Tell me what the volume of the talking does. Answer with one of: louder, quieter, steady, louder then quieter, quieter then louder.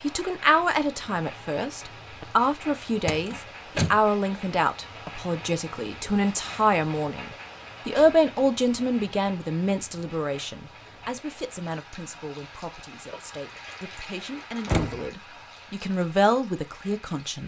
quieter then louder.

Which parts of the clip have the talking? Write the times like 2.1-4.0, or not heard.
0.0-17.4.